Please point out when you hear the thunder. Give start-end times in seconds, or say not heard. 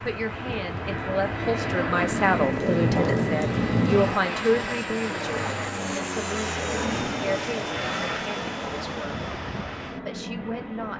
2.1-4.2.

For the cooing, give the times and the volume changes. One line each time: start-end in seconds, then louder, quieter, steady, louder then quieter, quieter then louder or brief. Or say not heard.
not heard.